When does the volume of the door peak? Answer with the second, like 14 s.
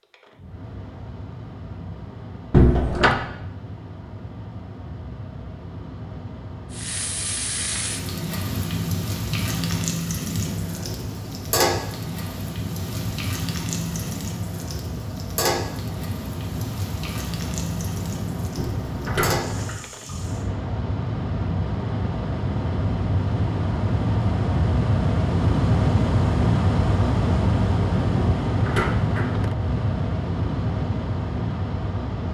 3 s.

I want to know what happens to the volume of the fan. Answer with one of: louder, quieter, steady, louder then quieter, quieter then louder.
louder.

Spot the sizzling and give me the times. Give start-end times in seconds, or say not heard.
6.7-20.4.